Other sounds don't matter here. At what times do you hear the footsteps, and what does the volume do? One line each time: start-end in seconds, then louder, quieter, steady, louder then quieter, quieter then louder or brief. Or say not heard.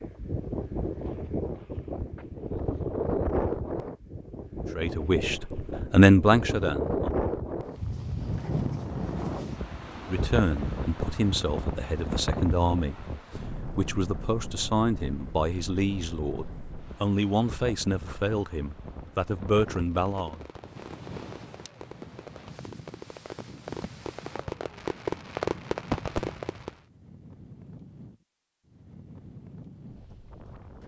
not heard.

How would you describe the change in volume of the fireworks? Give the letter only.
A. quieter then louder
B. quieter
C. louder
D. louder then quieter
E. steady
C.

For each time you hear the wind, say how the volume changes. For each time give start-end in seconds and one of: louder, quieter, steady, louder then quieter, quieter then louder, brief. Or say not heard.
0.0-30.8 quieter.